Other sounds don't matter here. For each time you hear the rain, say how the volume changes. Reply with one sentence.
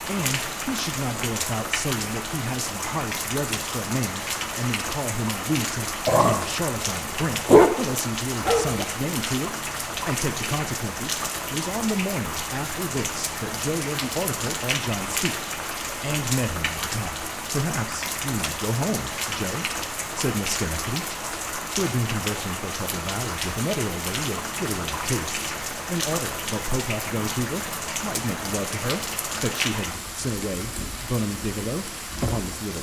The rain can be heard from 0.0 to 32.7 s, at a steady volume.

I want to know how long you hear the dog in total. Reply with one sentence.
You can hear the dog for 2 seconds altogether.